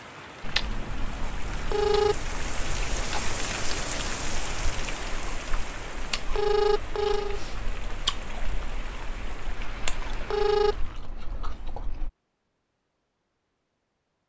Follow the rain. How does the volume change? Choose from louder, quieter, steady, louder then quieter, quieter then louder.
louder then quieter.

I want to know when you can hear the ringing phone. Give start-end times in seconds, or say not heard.
1.7-2.1, 6.3-7.4, 10.3-10.8.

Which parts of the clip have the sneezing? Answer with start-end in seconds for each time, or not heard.
not heard.